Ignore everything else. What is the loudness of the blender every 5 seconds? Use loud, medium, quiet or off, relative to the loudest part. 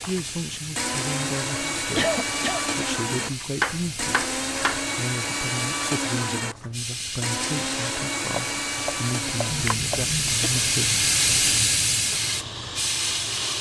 loud, loud, medium.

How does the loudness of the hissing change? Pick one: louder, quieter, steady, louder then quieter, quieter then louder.
louder.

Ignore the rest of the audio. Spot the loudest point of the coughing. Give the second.
2 s.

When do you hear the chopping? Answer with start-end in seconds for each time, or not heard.
3.6-4.8, 8.3-10.0.